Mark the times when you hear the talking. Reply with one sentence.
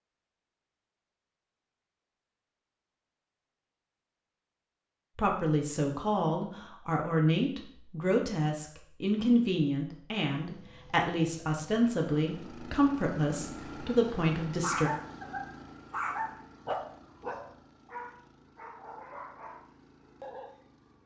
The talking can be heard from 5.2 to 14.9 s.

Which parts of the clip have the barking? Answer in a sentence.
The barking can be heard from 14.6 to 20.6 s.